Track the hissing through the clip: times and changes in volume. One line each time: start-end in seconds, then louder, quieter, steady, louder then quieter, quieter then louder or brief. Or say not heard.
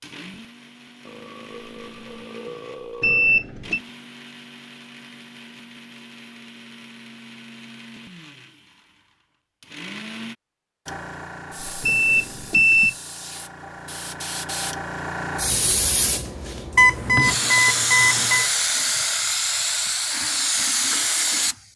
10.8-21.6 louder.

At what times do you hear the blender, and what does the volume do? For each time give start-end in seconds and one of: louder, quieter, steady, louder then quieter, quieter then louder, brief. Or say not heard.
0.0-10.3 steady.